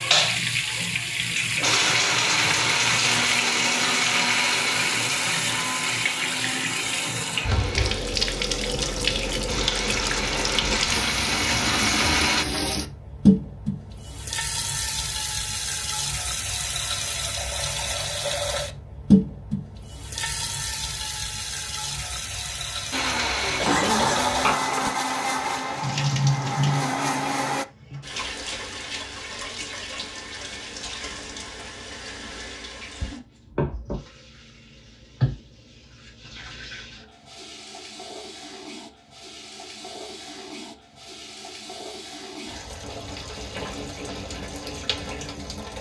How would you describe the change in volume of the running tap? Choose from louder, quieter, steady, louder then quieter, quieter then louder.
quieter.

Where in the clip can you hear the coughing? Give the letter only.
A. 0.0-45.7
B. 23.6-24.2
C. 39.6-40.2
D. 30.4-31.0
B.